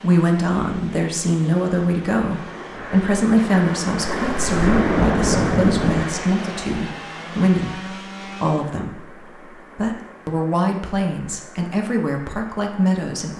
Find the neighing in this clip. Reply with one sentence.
The neighing can't be heard in this clip.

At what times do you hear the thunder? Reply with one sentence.
You can hear the thunder from 4.1 to 6.0 s.